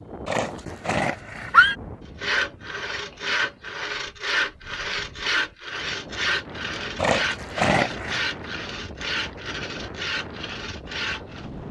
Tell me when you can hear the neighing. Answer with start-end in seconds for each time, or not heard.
0.2-1.8, 7.0-8.2.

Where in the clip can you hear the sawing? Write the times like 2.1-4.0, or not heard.
2.1-11.4.